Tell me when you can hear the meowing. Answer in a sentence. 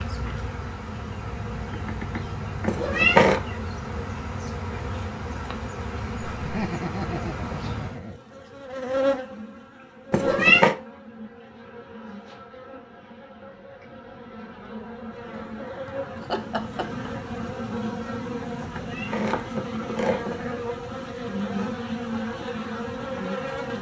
The meowing can be heard from 2.6 to 3.4 s, from 10.1 to 10.8 s and from 18.8 to 20.4 s.